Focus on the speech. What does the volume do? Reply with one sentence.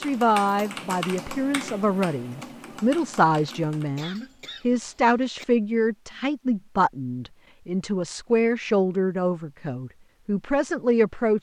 The loudness of the speech stays about the same.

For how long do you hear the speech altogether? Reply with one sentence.
You can hear the speech for 11 seconds altogether.